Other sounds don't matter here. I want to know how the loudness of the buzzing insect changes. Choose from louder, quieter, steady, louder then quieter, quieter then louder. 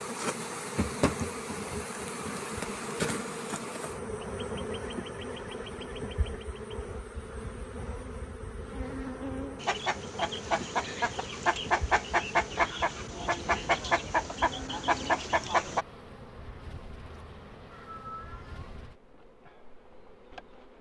quieter.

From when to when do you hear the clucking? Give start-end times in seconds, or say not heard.
9.6-15.8.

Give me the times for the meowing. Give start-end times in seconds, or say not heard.
17.7-18.8.